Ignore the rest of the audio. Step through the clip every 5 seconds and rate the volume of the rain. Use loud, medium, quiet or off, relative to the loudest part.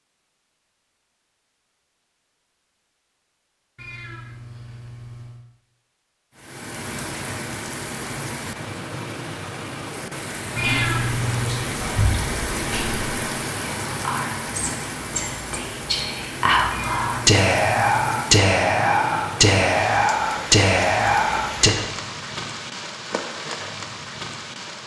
off, loud, loud, loud, loud.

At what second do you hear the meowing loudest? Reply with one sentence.
The loudest moment of the meowing is at 11 seconds.